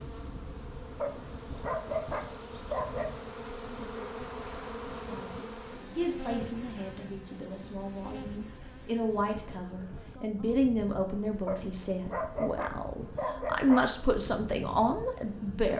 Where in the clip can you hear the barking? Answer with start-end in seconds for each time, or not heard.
0.9-3.1, 11.4-13.8.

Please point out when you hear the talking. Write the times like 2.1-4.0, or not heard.
5.0-15.7.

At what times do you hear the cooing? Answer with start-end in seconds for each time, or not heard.
not heard.